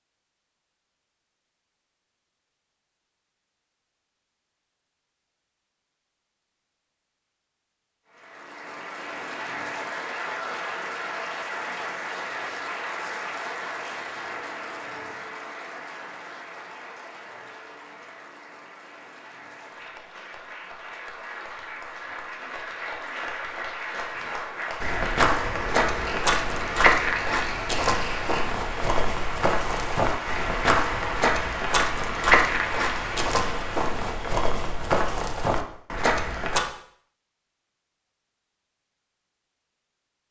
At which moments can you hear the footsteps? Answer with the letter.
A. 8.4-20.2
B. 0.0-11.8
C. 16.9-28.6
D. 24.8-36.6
D.